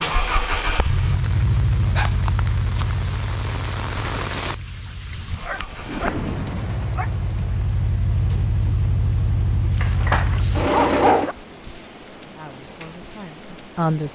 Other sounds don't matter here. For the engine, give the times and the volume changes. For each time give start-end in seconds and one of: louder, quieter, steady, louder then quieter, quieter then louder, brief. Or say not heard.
0.0-11.3 quieter then louder.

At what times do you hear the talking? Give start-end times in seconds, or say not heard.
12.2-14.1.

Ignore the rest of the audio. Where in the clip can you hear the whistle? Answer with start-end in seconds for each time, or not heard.
not heard.